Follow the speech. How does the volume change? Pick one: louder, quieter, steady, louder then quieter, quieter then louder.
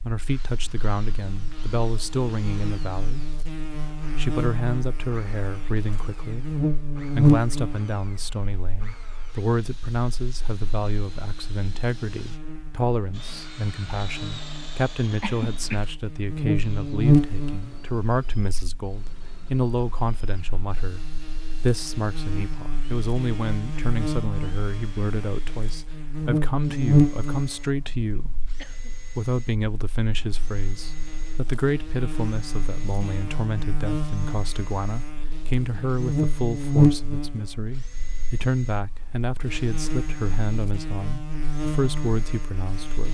steady.